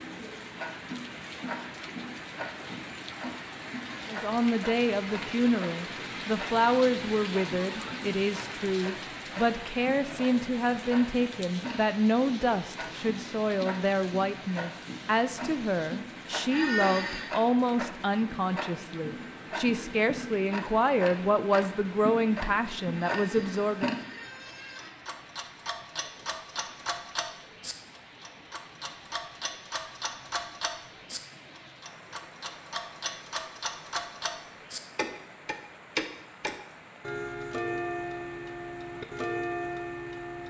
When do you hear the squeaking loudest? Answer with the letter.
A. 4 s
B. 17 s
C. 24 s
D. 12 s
B.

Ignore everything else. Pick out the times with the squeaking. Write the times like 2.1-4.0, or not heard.
16.5-17.3, 22.9-24.9.